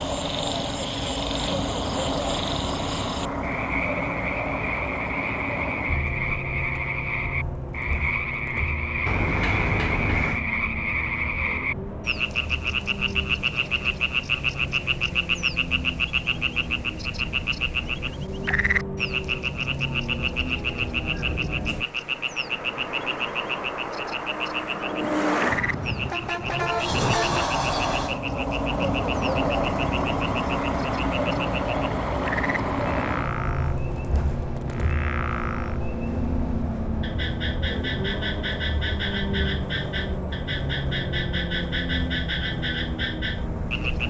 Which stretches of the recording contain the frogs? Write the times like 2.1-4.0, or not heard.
0.0-44.0.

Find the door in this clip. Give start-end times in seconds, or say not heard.
9.1-10.4, 26.4-28.2.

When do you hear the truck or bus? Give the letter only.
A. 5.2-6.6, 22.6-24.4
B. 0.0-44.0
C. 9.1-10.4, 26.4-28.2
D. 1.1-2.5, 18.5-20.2
B.